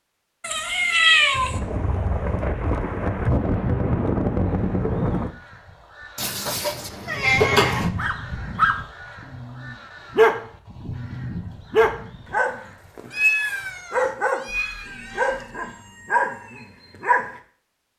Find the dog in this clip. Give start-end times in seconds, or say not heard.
8.0-17.4.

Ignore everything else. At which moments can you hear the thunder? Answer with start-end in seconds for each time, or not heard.
1.3-5.3.